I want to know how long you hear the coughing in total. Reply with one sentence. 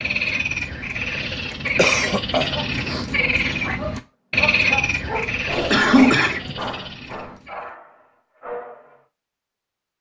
You can hear the coughing for 2 seconds altogether.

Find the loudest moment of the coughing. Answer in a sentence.
The loudest moment of the coughing is at 6 seconds.